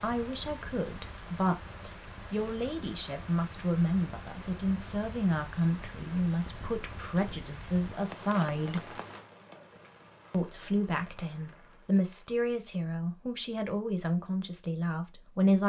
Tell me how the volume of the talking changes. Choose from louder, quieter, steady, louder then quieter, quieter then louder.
steady.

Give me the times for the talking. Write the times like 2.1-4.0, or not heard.
0.0-8.9, 10.3-15.6.